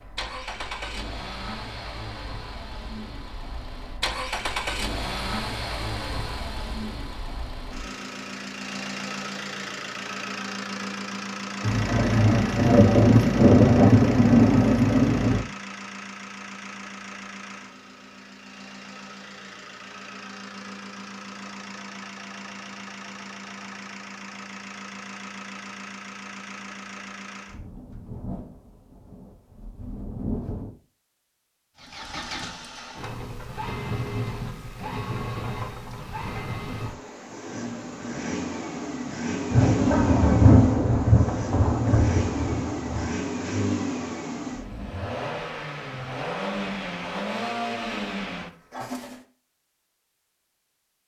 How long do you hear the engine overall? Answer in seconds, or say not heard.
45 s.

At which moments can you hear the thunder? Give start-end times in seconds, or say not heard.
11.6-15.4, 27.4-30.7, 39.5-43.1.